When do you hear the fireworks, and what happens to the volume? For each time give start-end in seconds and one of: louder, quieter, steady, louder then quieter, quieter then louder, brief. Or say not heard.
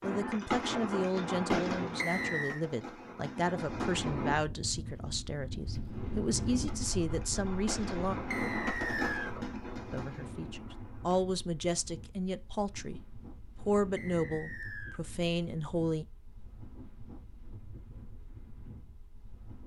0.0-4.3 quieter then louder
6.5-11.2 louder then quieter.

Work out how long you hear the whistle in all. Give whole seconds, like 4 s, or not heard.
3 s.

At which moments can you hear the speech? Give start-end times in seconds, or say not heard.
0.0-8.2, 9.9-16.1.